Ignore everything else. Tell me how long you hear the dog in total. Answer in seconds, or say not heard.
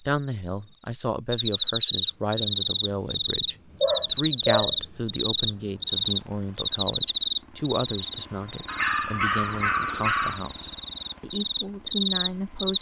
3 s.